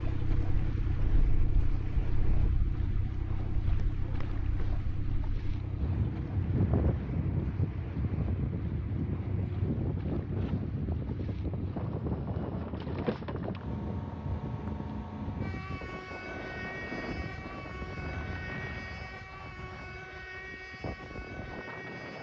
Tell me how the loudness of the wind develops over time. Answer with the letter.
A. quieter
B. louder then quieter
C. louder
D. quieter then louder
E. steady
B.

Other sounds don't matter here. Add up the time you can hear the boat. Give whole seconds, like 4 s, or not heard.
22 s.